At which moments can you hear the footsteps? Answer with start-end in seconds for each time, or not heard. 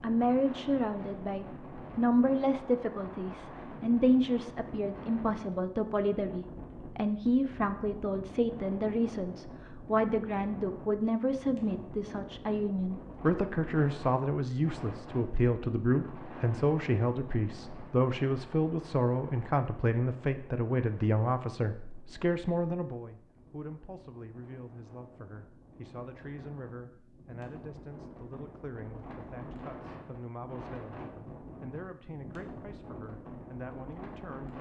not heard.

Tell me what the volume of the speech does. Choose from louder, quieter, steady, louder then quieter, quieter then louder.
quieter.